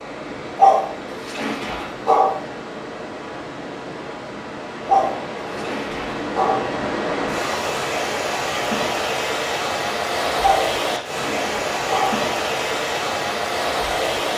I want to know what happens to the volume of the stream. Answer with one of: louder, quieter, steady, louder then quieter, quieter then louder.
louder.